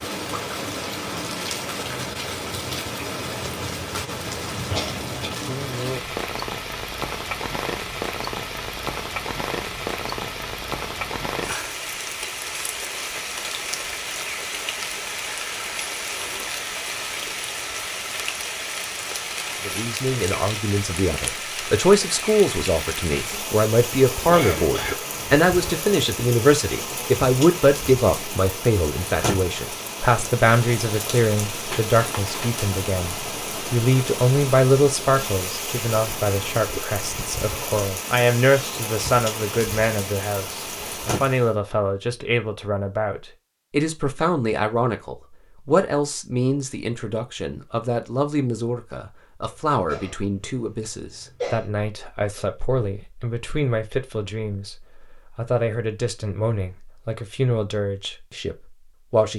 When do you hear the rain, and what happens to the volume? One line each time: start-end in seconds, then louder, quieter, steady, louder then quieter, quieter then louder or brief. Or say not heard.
0.0-41.5 steady.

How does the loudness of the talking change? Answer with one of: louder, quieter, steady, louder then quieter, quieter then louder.
quieter.